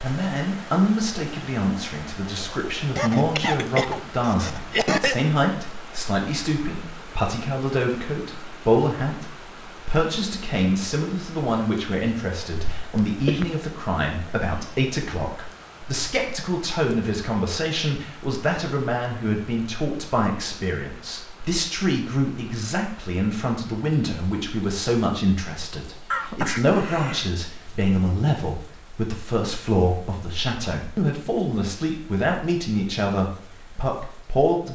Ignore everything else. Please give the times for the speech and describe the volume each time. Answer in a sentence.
The speech can be heard from 0.0 to 34.7 s, at a steady volume.